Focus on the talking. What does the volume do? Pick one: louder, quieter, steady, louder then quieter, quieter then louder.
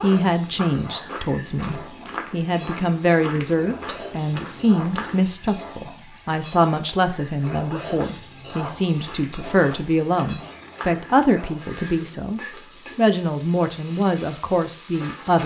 steady.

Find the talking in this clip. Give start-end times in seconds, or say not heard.
0.0-15.4.